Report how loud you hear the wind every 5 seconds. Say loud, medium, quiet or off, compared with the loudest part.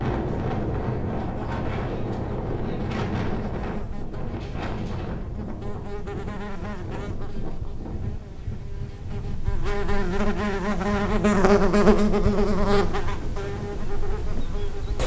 loud, medium, medium.